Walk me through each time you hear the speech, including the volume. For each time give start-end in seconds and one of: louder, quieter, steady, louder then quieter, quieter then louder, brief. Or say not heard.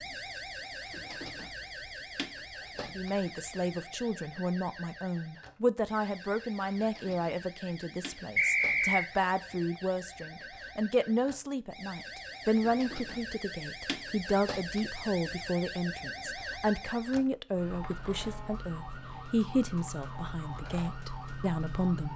3.0-22.1 steady.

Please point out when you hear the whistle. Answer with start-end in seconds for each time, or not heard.
8.3-9.1.